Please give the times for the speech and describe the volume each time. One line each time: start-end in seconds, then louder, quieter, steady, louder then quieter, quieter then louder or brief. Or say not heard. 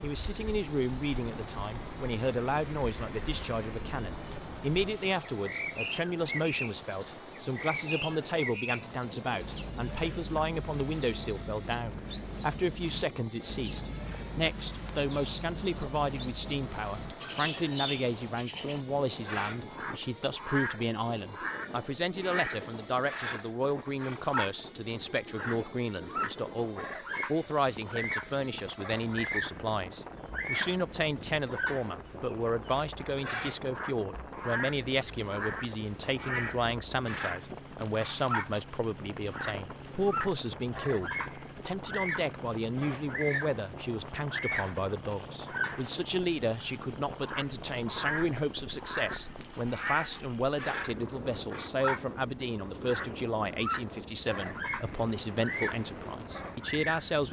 0.0-57.2 steady.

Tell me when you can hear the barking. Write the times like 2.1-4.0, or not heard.
not heard.